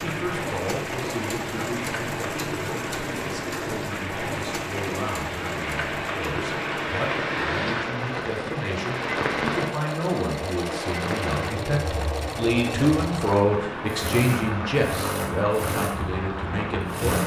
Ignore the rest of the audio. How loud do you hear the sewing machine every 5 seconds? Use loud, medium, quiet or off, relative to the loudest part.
loud, medium, loud, loud.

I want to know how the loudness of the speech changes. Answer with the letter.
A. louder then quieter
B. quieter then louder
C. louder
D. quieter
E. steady
C.